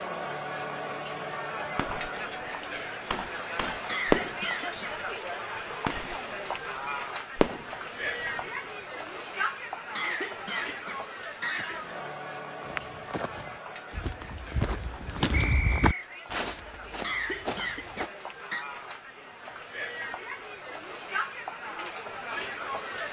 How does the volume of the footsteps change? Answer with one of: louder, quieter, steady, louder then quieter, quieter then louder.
louder then quieter.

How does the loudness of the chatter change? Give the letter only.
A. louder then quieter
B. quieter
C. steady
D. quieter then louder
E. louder
D.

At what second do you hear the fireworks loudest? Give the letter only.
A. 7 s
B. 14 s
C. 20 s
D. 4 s
D.